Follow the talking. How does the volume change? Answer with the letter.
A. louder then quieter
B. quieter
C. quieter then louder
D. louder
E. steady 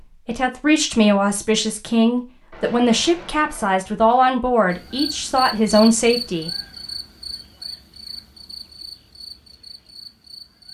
E.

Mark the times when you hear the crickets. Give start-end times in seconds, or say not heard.
4.7-10.6.